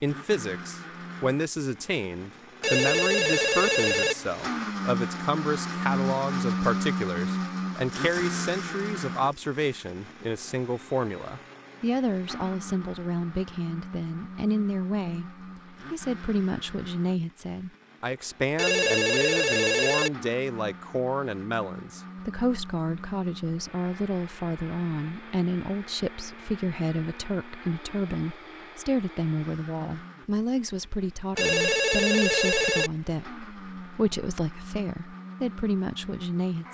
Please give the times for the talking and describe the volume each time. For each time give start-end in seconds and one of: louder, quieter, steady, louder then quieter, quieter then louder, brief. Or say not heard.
0.0-36.6 steady.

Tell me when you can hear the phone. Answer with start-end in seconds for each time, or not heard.
2.6-4.2, 18.6-20.1, 31.4-32.9.